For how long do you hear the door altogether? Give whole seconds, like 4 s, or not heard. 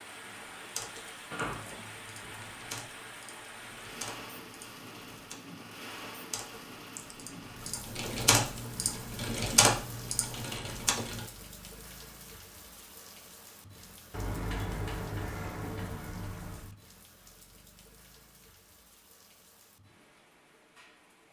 4 s.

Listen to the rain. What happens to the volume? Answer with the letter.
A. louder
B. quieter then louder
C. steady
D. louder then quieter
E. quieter
E.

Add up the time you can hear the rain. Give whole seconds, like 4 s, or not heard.
21 s.